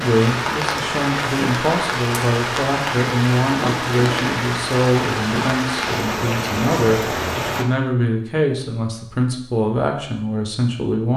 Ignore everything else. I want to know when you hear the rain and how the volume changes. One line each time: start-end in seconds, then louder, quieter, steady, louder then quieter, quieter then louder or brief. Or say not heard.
0.0-7.7 steady.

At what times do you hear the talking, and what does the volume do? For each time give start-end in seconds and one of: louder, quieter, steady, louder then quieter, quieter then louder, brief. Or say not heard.
0.0-11.1 steady.